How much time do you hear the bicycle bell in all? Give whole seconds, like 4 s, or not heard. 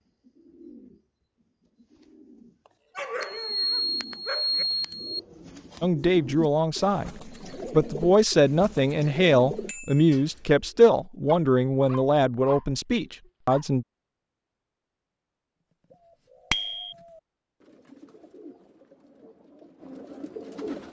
3 s.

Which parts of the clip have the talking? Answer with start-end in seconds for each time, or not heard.
5.8-13.8.